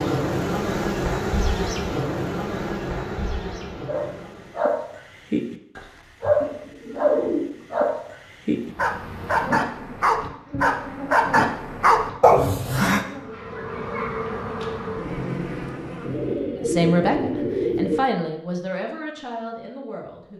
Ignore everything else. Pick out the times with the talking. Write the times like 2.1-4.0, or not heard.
16.6-20.3.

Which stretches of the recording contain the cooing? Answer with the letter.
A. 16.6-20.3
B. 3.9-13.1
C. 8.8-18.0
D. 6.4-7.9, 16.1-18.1
D.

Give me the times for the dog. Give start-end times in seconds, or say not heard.
3.9-13.1.